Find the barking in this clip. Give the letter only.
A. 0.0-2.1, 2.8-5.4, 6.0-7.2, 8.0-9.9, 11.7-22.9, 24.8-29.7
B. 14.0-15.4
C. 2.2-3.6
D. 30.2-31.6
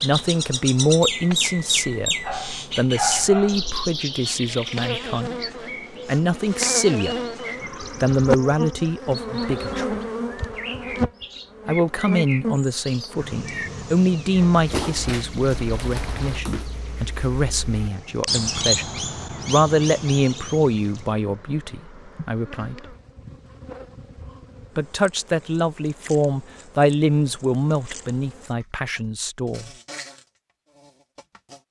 C.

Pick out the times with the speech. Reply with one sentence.
You can hear the speech from 0.0 to 2.1 s, from 2.8 to 5.4 s, from 6.0 to 7.2 s, from 8.0 to 9.9 s, from 11.7 to 22.9 s and from 24.8 to 29.7 s.